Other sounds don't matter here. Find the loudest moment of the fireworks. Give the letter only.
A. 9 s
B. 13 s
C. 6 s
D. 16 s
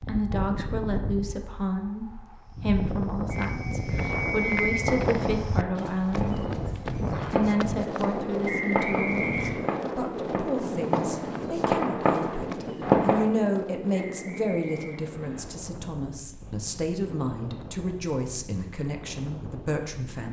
B.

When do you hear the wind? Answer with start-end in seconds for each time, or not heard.
0.0-20.2.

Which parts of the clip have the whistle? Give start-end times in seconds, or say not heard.
3.4-4.8, 8.4-9.8, 13.9-15.4.